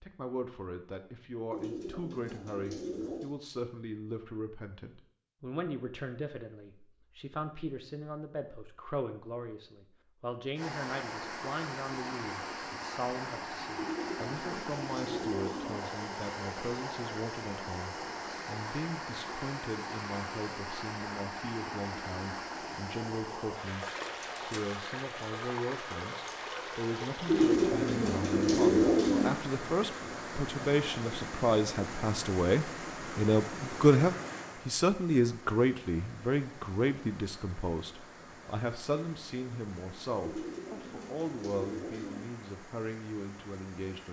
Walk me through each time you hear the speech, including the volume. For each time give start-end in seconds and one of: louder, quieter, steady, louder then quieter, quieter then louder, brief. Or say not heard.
0.0-23.9 steady
24.4-44.0 louder then quieter.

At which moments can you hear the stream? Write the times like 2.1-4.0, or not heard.
10.6-44.0.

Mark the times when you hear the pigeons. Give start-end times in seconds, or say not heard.
1.5-3.3, 13.8-15.8, 27.2-29.3, 40.2-42.2.